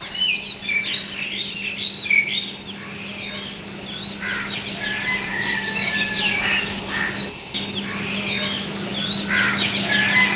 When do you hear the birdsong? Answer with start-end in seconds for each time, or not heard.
0.0-10.3.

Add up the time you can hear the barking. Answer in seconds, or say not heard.
not heard.